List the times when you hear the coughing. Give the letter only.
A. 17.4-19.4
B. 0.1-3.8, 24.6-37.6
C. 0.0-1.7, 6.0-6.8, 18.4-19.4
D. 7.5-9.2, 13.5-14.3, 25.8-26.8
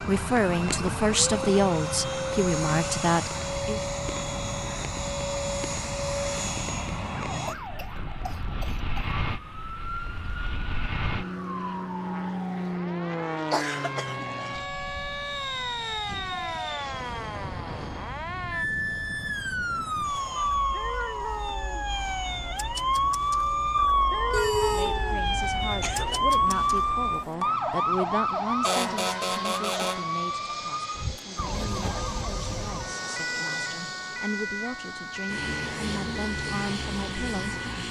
D.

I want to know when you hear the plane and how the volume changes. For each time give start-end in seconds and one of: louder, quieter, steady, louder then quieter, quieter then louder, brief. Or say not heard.
0.0-37.8 quieter then louder.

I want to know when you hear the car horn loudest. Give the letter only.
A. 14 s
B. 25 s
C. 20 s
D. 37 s
B.